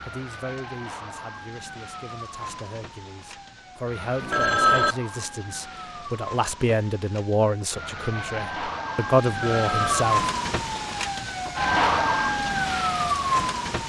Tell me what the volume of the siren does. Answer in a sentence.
The loudness of the siren goes up.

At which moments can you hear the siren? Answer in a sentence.
You can hear the siren from 0.0 to 13.8 s.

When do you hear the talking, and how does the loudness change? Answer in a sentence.
The talking can be heard from 0.0 to 10.3 s, getting louder.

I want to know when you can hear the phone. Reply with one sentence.
You can hear the phone from 4.2 to 5.0 s and from 9.3 to 10.1 s.